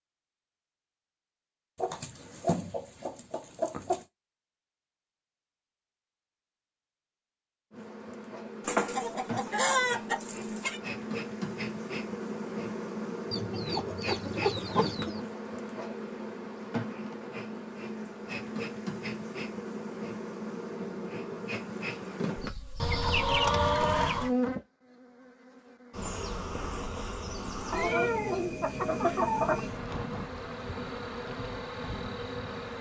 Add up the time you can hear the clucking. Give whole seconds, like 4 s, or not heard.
10 s.